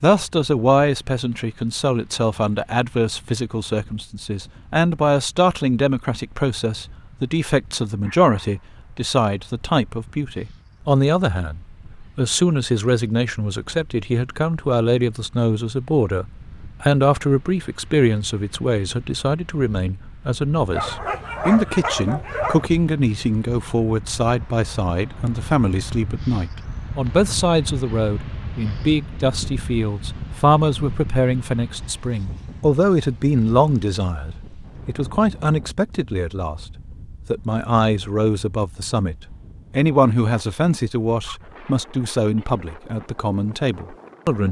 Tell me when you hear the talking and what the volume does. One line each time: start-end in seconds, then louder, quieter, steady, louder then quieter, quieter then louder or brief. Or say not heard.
0.0-44.4 steady.